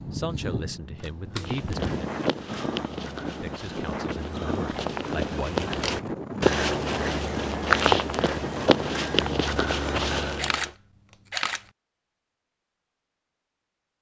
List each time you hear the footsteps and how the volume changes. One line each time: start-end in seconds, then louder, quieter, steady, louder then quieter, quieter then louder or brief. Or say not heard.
1.4-10.7 louder.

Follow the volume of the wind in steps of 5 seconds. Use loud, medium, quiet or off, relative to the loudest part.
loud, loud, off.